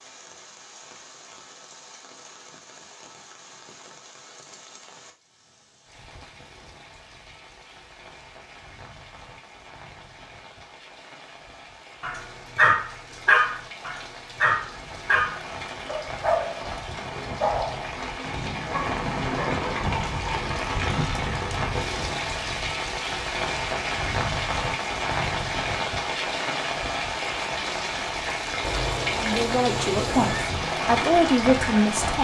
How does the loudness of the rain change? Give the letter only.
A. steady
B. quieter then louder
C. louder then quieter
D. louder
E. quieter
D.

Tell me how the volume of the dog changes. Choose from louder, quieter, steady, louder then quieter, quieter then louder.
quieter.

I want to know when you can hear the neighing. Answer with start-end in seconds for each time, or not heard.
28.6-30.5.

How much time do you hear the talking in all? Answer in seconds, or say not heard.
3 s.